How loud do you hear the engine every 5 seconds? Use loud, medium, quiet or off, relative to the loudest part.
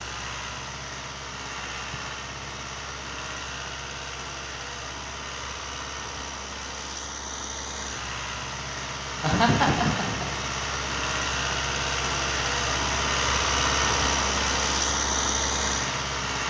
medium, medium, loud, loud.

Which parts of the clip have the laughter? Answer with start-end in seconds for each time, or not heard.
9.2-10.2.